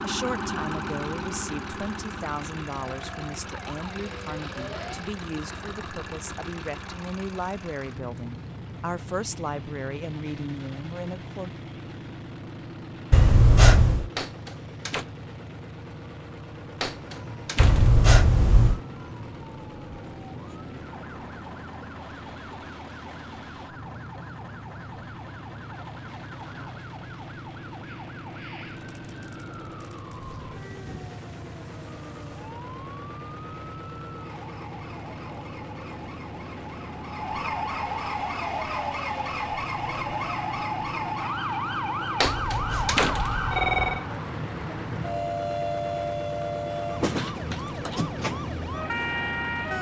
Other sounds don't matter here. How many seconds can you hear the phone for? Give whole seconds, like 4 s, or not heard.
4 s.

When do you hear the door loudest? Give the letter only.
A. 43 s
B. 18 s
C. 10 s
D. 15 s
A.